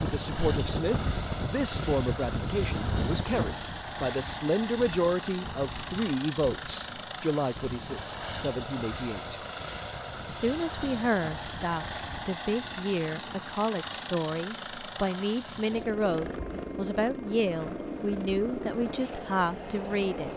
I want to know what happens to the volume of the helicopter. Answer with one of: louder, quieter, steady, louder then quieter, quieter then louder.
steady.